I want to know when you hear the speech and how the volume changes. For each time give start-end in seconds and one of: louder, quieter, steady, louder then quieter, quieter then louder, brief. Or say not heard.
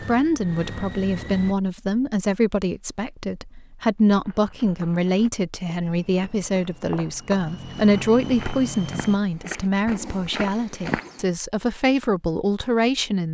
0.0-13.2 steady.